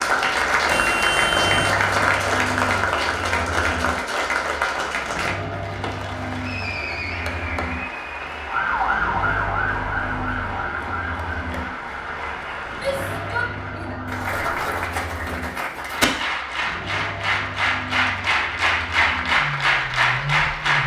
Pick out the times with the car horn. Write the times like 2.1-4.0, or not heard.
0.7-1.8.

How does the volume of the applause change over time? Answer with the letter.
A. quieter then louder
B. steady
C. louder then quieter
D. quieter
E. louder
A.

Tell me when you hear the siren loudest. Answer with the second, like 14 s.
9 s.